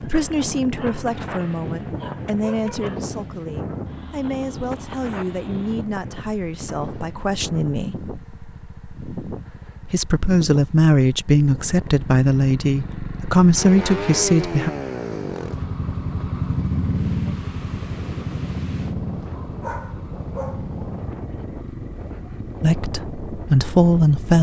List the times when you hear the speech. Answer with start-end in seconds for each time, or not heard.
0.0-8.0, 9.8-14.7, 22.6-24.3.